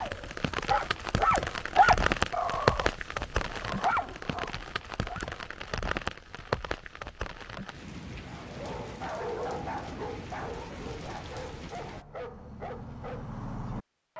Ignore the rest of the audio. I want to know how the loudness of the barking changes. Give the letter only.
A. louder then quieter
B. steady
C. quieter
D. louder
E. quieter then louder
C.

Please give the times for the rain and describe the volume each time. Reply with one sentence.
The rain can be heard from 0.0 to 12.1 s, getting quieter.